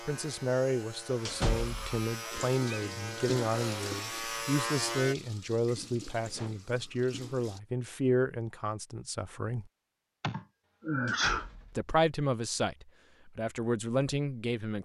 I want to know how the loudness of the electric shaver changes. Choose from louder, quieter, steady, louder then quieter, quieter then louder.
louder.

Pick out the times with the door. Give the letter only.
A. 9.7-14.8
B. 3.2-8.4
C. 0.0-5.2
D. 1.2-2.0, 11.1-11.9
D.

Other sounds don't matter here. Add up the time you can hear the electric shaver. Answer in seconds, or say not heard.
5 s.